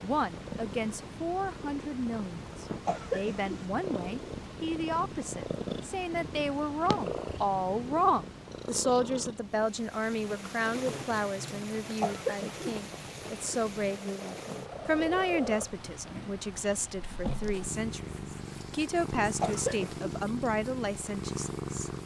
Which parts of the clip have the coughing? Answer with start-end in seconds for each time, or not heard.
2.9-3.6, 12.0-12.7, 19.4-20.1.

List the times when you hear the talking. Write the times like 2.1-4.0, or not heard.
0.0-21.9.